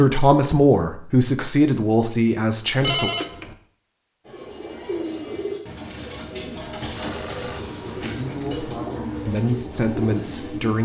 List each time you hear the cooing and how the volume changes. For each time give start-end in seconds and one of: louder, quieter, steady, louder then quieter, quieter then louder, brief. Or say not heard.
4.2-10.8 steady.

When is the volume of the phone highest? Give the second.
3 s.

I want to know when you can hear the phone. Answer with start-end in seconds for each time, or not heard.
2.8-3.5, 7.0-8.7.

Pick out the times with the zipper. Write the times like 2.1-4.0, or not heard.
not heard.